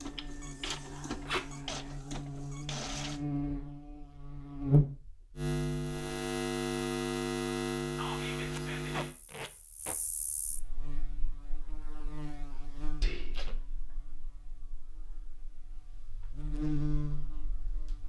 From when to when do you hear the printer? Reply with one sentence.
The printer can be heard from 0.0 to 3.2 s.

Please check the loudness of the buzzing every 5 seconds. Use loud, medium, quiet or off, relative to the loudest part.
loud, loud, quiet, medium.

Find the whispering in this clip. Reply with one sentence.
The whispering can be heard from 0.7 to 1.9 s, from 8.0 to 9.1 s and from 13.0 to 13.5 s.